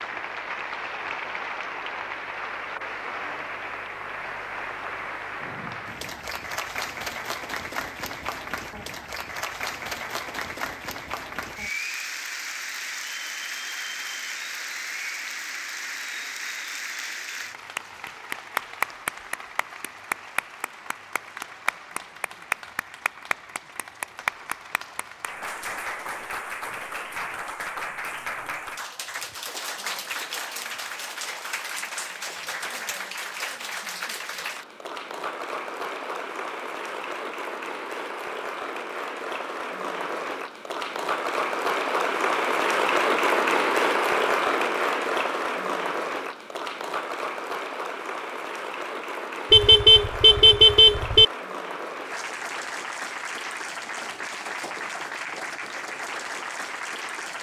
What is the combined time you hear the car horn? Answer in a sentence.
You can hear the car horn for 2 seconds altogether.